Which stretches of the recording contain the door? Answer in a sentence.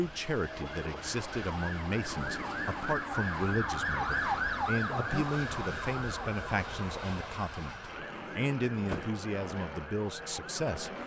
You can hear the door from 2.0 to 3.0 s and from 8.0 to 9.2 s.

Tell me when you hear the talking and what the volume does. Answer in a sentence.
You can hear the talking from 0.0 to 11.0 s, at a steady volume.